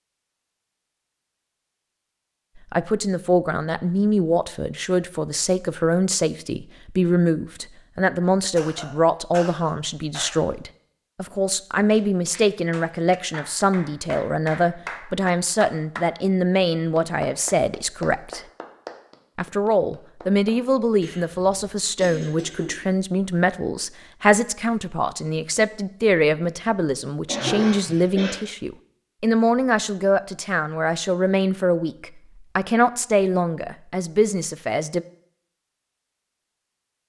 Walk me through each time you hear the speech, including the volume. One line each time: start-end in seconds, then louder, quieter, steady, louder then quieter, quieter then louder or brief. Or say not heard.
2.7-18.4 steady
19.4-35.0 steady.